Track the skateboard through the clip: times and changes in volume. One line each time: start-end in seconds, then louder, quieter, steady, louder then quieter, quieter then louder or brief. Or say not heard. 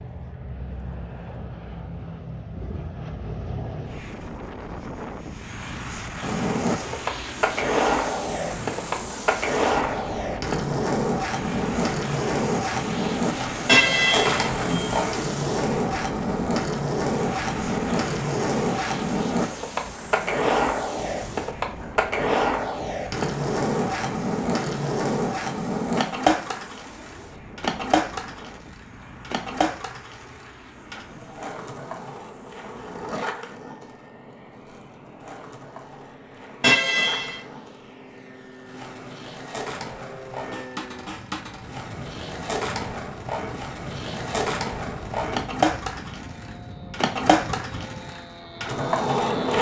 6.2-49.5 quieter then louder.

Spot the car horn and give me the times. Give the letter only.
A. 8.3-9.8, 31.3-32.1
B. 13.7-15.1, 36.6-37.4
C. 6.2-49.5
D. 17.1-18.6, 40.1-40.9
B.